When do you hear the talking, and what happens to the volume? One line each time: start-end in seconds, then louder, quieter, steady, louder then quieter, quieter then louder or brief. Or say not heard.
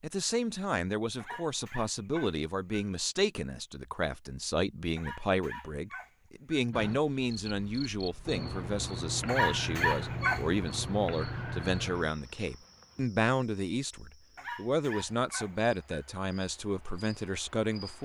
0.0-18.0 steady.